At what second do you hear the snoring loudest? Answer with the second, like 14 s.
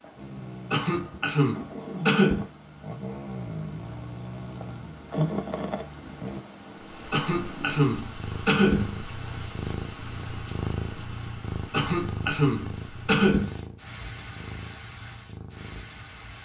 5 s.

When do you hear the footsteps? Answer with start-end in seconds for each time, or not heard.
not heard.